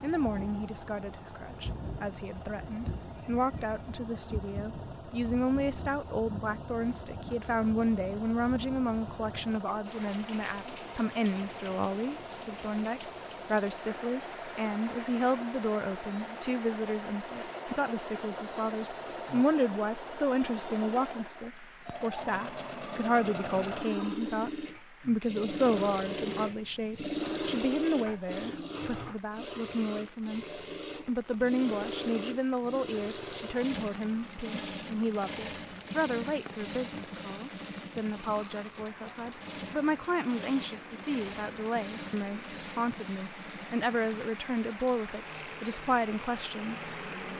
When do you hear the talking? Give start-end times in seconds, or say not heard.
0.0-46.8.